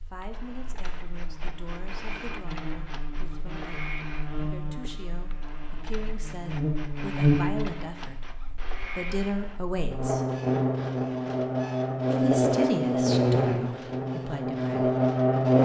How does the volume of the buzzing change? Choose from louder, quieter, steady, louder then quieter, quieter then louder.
louder.